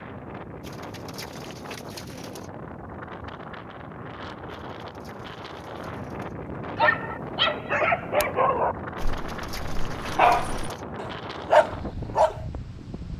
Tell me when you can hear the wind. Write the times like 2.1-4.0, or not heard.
0.0-13.1.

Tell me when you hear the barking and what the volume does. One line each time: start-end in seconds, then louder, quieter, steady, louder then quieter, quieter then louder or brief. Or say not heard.
6.8-12.4 quieter then louder.